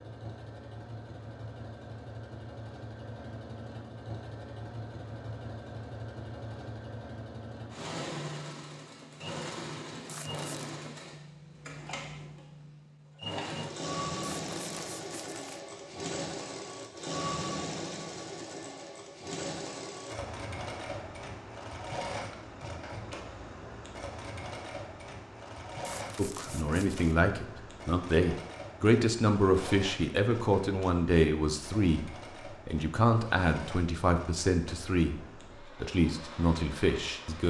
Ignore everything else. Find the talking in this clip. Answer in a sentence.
The talking can be heard from 26.1 to 35.2 s and from 35.8 to 37.4 s.